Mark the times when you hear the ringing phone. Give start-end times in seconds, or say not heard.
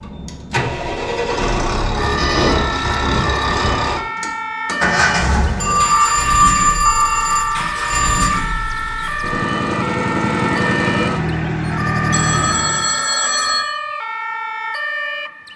2.1-2.8, 5.6-8.4, 12.1-13.6.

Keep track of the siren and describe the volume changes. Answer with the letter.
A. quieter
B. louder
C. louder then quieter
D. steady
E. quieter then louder
D.